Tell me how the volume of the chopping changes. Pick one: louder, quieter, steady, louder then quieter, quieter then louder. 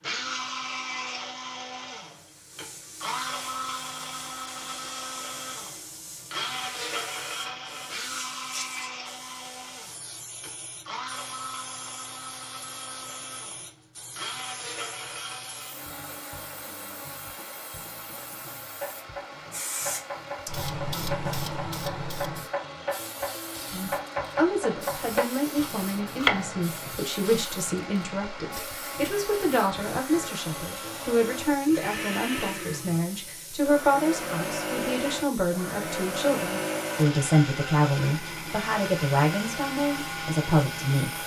louder.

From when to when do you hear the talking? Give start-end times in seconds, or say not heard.
23.7-41.2.